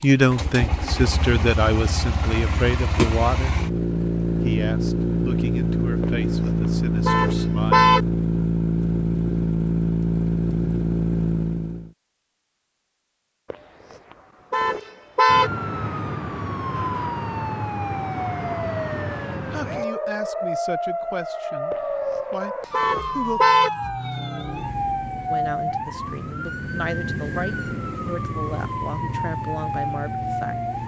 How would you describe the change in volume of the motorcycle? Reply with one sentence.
The volume of the motorcycle goes up.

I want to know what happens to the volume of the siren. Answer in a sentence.
The loudness of the siren stays about the same.